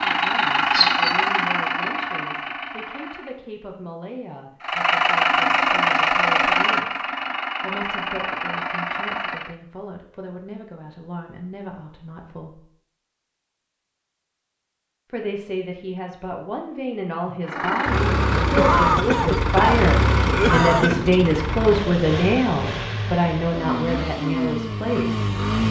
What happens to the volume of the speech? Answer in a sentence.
The volume of the speech goes up.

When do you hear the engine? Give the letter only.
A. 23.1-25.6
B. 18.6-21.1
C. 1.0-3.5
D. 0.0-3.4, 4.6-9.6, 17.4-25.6
D.